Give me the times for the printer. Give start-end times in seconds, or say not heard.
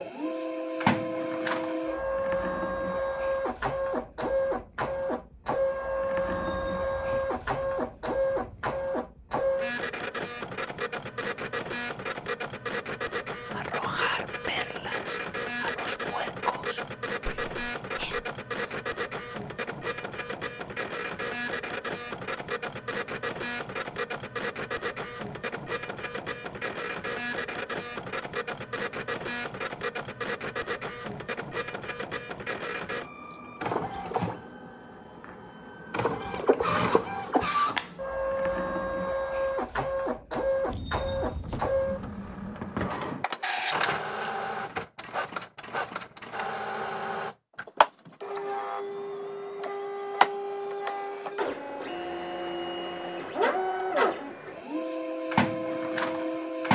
0.0-56.7.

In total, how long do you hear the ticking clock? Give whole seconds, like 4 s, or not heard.
not heard.